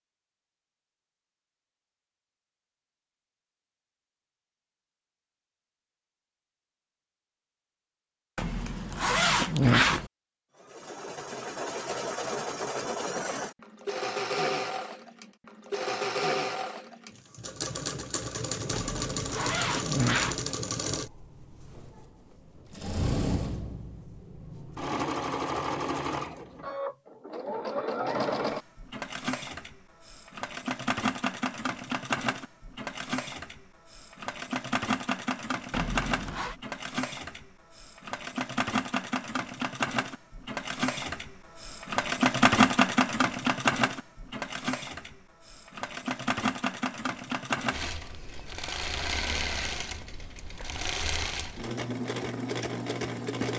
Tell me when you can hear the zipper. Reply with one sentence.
The zipper can be heard from 8.3 to 10.1 s, from 18.7 to 20.4 s and from 35.7 to 36.5 s.